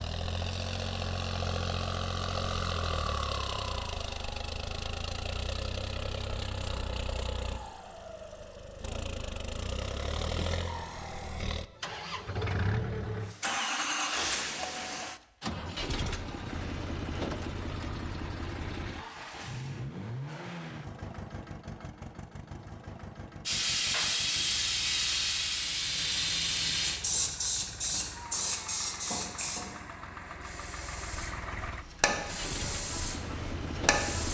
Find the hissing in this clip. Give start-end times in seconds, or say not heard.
23.4-34.3.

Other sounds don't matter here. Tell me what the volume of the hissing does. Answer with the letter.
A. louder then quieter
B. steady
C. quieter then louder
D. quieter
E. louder
C.